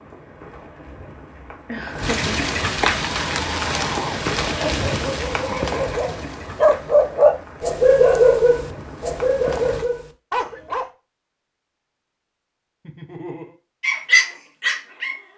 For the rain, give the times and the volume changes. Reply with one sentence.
The rain can be heard from 0.0 to 9.9 s, getting louder then quieter.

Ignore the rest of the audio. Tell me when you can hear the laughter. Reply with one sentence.
The laughter can be heard from 1.6 to 2.5 s, from 5.3 to 6.0 s and from 12.8 to 13.6 s.